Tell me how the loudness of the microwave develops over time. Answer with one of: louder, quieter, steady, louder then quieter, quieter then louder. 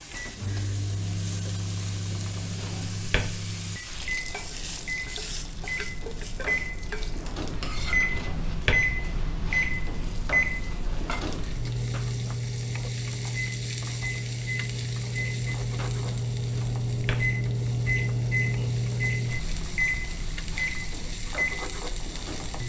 louder.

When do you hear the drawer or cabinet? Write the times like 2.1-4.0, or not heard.
2.2-3.5, 7.8-8.9, 16.4-17.3.